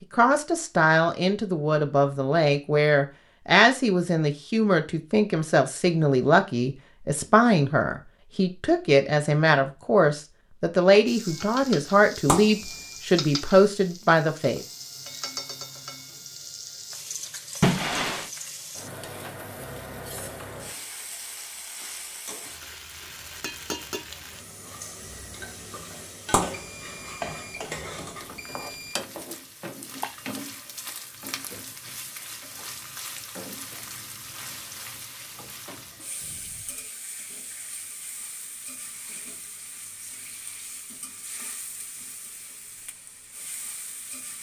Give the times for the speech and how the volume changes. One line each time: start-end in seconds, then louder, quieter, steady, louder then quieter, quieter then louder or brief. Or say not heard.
0.1-14.7 steady.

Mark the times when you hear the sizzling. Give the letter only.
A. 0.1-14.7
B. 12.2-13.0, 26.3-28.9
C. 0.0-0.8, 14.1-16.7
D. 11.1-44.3
D.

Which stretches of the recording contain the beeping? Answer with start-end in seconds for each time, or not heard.
12.2-13.0, 26.3-28.9.